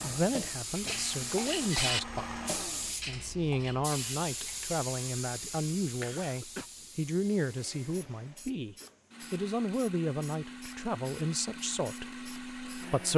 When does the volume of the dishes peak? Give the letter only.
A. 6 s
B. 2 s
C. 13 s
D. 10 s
B.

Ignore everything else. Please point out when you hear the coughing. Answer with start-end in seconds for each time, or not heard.
6.0-6.7.